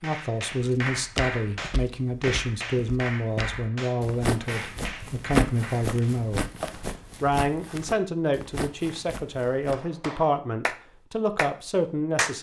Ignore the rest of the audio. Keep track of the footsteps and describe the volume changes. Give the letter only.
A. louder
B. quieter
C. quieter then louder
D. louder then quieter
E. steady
D.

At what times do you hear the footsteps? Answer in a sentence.
You can hear the footsteps from 0.5 to 9.8 s.